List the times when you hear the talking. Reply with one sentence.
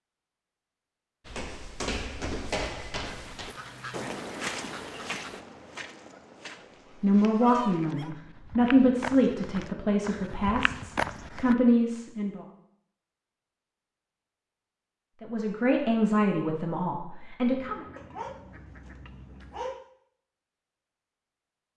The talking can be heard from 7.0 to 12.4 s and from 15.2 to 17.9 s.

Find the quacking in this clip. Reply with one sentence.
You can hear the quacking from 3.0 to 5.4 s and from 17.5 to 19.8 s.